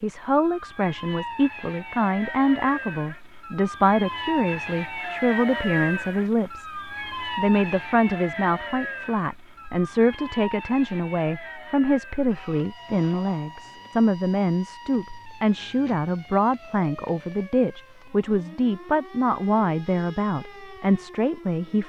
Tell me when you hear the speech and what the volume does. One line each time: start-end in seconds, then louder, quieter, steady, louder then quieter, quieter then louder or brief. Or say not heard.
0.0-21.8 steady.